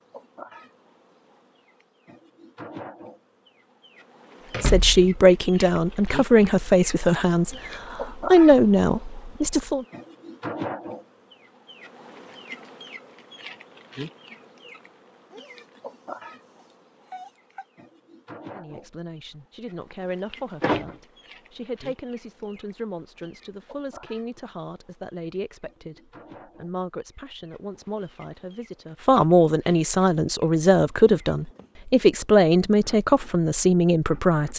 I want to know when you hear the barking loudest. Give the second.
17 s.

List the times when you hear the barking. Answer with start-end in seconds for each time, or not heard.
15.3-17.6.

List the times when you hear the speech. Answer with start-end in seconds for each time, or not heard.
4.6-9.8, 18.5-34.5.